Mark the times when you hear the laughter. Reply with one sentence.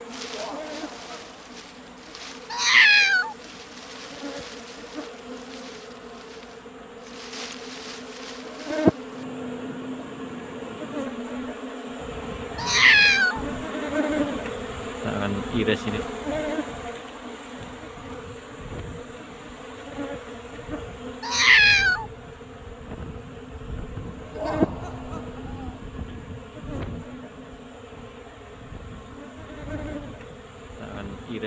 The laughter can be heard from 0.3 to 1.4 s and from 24.3 to 25.8 s.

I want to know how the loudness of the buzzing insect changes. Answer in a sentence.
The volume of the buzzing insect goes up, then down.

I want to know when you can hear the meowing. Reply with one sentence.
The meowing can be heard from 2.5 to 3.4 s, from 12.6 to 13.4 s and from 21.2 to 22.1 s.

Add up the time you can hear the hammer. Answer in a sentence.
You can't hear the hammer here.